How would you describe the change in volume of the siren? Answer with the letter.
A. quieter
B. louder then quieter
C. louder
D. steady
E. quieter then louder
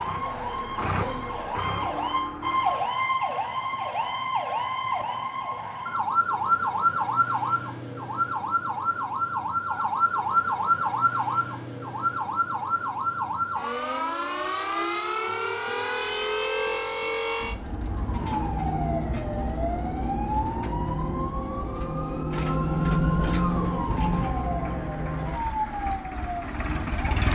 D.